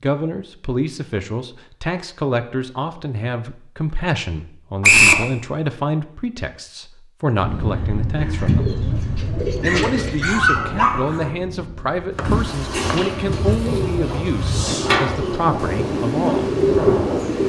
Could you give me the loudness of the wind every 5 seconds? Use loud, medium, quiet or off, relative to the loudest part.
off, loud, medium, loud.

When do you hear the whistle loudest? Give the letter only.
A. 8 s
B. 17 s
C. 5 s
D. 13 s
C.